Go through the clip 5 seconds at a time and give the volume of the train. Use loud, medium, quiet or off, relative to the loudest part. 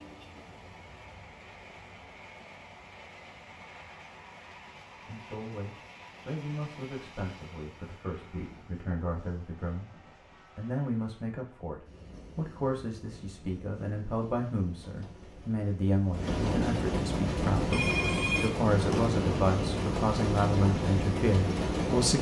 quiet, quiet, quiet, loud, loud.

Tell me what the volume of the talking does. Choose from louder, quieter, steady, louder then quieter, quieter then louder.
louder.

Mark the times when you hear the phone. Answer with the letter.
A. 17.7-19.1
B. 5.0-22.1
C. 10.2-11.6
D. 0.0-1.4
A.